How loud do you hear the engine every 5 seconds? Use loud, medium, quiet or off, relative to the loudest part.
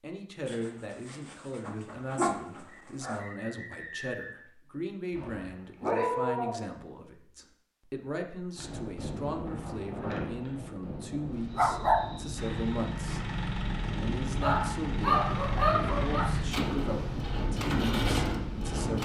off, off, loud, loud.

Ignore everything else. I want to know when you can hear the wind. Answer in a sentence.
The wind can be heard from 8.6 to 18.9 s.